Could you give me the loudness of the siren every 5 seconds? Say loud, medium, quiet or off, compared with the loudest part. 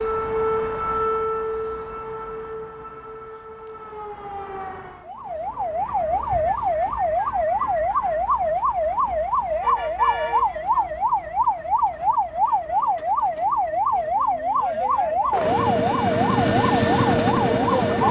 medium, loud, loud, loud.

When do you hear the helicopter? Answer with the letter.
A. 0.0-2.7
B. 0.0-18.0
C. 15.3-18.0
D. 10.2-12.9
C.